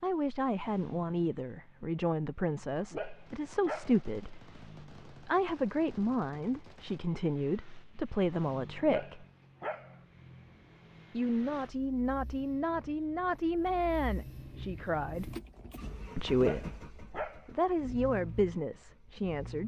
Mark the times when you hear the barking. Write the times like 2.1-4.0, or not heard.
2.9-4.0, 8.8-9.9, 16.3-17.5.